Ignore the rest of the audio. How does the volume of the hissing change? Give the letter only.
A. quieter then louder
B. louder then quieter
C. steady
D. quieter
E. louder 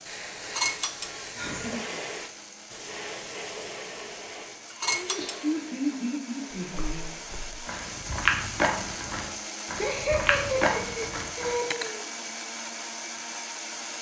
D.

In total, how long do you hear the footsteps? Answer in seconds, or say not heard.
5 s.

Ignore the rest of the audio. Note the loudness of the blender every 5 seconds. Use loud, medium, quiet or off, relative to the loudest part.
medium, loud, loud.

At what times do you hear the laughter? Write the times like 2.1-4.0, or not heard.
1.4-2.0, 5.0-7.1, 9.8-12.0.